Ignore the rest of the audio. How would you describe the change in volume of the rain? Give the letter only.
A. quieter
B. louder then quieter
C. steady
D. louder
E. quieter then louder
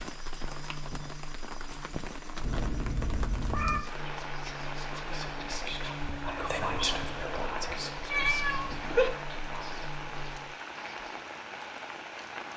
C.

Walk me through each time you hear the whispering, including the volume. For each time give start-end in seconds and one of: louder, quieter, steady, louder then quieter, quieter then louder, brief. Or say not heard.
3.7-11.1 louder then quieter.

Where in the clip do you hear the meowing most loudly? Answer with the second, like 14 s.
9 s.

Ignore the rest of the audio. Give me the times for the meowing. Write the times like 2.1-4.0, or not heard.
2.4-3.9, 8.1-9.1.